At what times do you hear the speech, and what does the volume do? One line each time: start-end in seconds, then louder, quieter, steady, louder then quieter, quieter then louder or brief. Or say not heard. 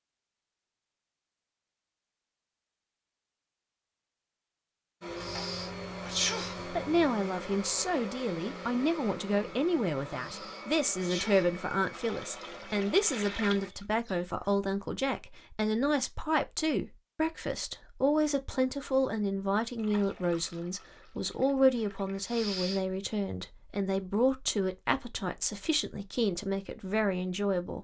6.7-27.8 steady.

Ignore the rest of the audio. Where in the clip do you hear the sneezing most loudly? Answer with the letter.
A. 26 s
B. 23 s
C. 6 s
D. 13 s
C.